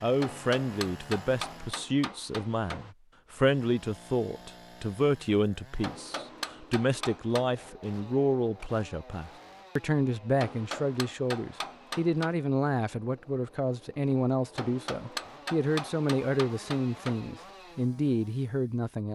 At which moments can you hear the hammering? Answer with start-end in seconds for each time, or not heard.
0.1-2.9, 5.8-7.5, 10.3-12.3, 14.6-17.2.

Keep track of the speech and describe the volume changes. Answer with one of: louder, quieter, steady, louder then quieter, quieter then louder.
steady.